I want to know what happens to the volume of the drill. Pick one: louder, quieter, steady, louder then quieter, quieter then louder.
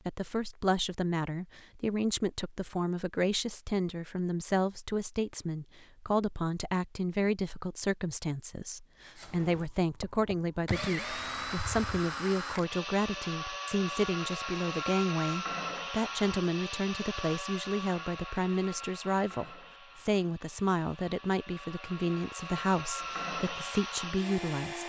quieter then louder.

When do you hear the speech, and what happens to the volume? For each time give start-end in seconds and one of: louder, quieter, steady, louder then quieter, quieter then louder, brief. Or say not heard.
0.1-24.8 steady.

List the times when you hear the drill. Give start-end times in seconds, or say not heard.
9.2-24.8.